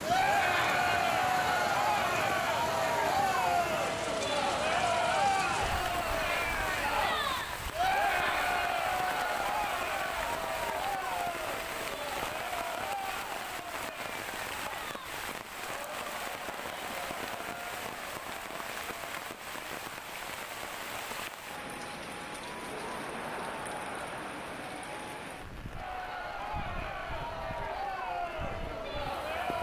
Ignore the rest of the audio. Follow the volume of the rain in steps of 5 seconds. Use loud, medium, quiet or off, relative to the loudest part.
loud, loud, loud, loud, loud, medium.